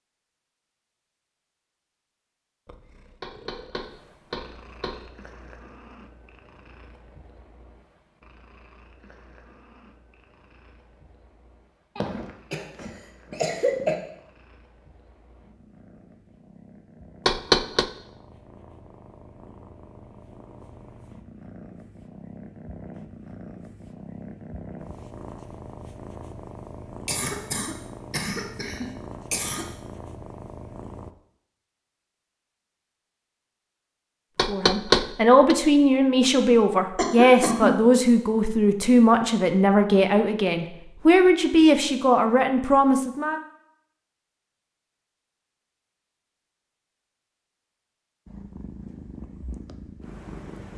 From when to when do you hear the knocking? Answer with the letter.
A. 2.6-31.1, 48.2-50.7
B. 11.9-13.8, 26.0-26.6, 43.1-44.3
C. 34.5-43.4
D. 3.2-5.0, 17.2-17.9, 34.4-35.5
D.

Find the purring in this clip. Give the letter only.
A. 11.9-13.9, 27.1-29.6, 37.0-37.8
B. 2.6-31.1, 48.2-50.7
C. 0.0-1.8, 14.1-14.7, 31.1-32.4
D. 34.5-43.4
B.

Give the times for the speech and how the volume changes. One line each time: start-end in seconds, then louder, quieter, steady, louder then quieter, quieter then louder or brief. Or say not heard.
34.5-43.4 steady.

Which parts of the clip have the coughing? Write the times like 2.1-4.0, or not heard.
11.9-13.9, 27.1-29.6, 37.0-37.8.